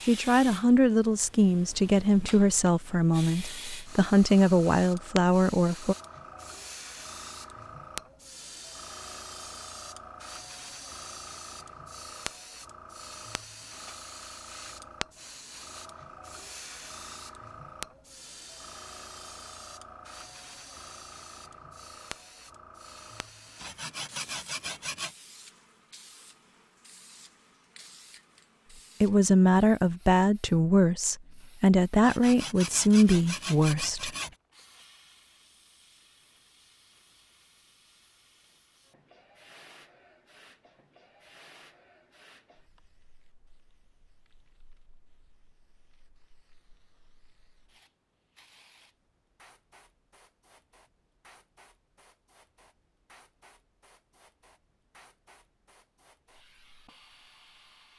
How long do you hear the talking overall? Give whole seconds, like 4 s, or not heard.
11 s.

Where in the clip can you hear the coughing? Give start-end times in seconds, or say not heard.
not heard.